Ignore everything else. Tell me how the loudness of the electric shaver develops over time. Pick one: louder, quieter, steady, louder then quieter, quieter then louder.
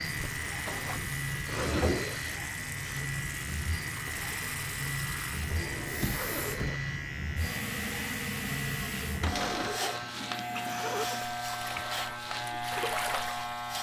steady.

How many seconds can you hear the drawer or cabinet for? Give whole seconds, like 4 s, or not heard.
3 s.